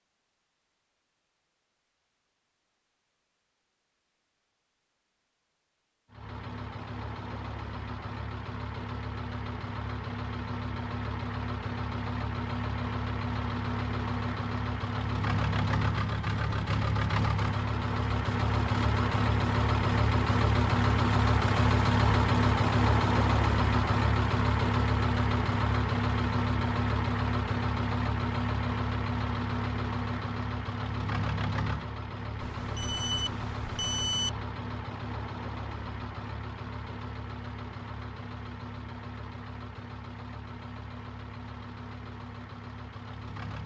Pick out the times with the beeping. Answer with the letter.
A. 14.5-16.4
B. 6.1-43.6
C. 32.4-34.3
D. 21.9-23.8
C.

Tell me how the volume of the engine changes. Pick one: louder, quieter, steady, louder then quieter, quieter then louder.
louder then quieter.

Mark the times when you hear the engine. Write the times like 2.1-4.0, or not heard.
6.1-43.6.